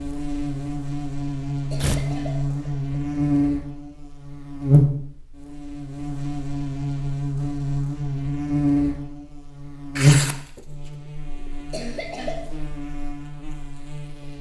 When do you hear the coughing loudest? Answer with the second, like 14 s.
12 s.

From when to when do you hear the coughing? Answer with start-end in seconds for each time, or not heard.
1.6-3.0, 11.6-12.4.